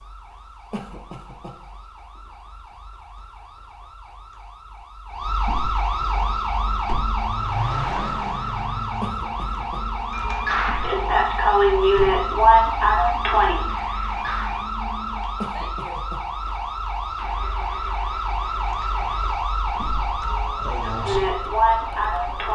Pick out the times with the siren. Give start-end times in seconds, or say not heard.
0.0-22.5.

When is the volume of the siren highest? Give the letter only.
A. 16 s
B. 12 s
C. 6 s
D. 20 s
B.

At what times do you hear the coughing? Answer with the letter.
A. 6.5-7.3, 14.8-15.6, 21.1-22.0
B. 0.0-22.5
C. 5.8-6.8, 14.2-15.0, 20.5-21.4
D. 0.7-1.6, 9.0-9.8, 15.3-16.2
D.